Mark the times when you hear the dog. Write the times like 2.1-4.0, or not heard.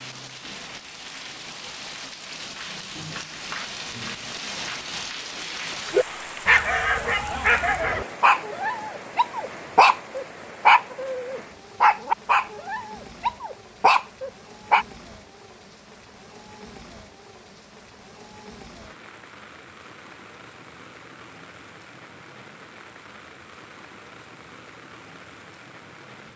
5.9-14.8.